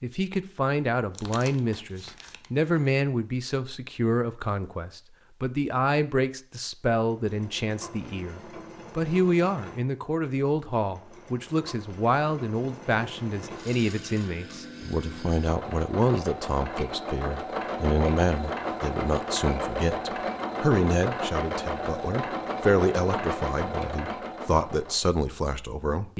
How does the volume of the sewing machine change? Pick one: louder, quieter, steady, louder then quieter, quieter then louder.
louder.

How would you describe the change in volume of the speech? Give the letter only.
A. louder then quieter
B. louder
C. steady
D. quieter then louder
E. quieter
C.